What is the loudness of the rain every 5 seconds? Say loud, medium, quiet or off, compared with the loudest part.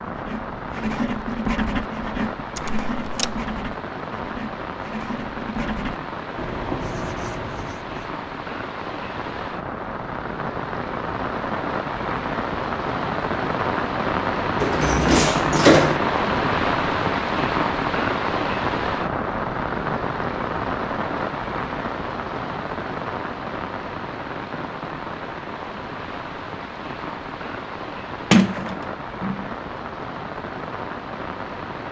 medium, medium, loud, loud, medium, medium, medium.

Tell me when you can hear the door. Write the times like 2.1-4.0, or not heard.
2.5-3.4, 14.6-16.0, 28.3-29.4.